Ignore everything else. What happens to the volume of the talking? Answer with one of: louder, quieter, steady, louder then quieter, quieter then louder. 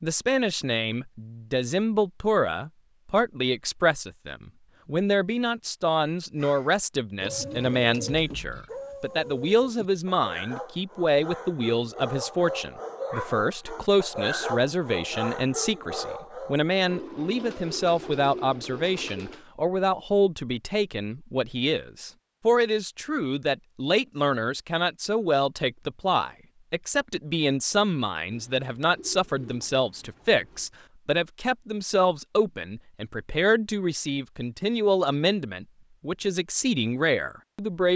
steady.